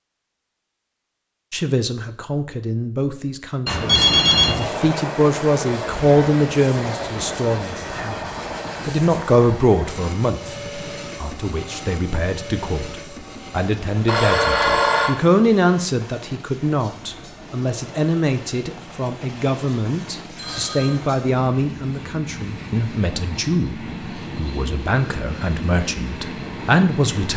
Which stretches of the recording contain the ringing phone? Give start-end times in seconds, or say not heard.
3.6-4.8, 14.1-15.2, 20.4-21.0.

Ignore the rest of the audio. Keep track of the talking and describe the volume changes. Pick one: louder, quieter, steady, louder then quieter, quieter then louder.
steady.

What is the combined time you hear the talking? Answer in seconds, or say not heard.
26 s.